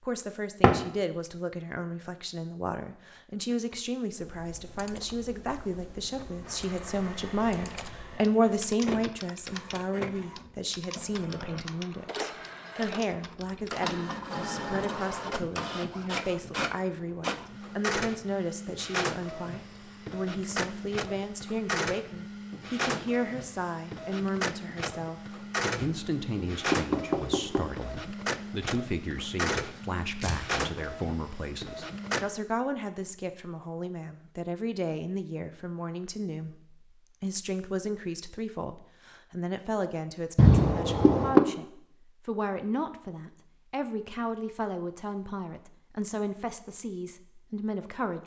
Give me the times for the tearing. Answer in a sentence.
The tearing can be heard from 29.7 to 30.4 s.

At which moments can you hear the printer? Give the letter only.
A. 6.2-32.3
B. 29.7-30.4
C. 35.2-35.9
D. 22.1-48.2
A.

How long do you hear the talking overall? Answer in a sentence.
You can hear the talking for 48 seconds altogether.